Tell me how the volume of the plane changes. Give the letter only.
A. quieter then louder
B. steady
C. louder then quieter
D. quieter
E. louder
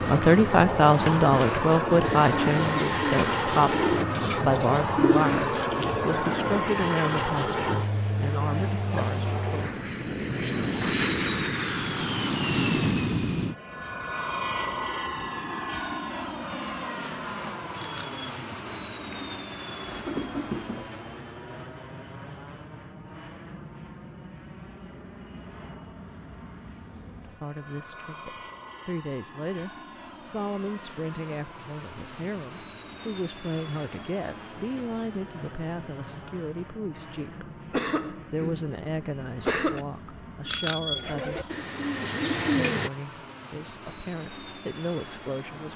D.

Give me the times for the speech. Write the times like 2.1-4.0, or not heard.
0.0-9.8, 27.2-37.5, 38.3-41.5, 42.5-45.7.